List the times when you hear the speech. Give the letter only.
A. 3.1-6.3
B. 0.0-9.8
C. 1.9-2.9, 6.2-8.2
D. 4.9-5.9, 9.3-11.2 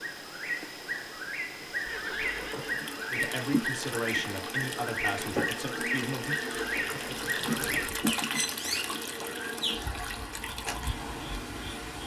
A.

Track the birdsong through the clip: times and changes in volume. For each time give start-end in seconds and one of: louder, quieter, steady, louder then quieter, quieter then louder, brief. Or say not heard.
0.0-9.8 steady.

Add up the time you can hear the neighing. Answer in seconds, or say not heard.
3 s.